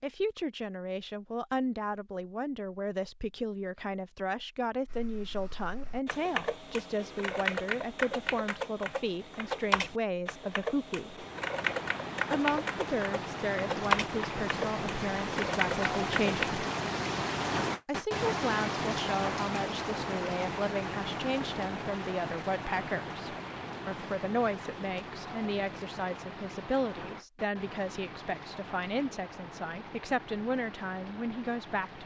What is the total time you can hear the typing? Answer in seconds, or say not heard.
12 s.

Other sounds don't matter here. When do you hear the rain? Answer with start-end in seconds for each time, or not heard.
11.1-32.0.